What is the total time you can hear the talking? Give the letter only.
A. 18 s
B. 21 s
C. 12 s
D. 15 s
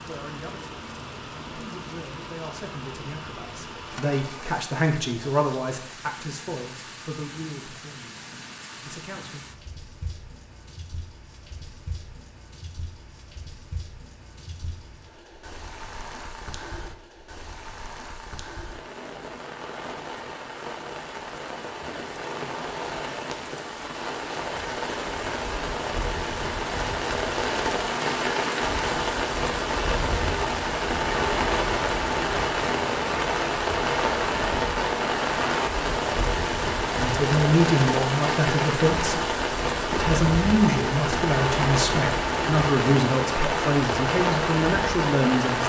A.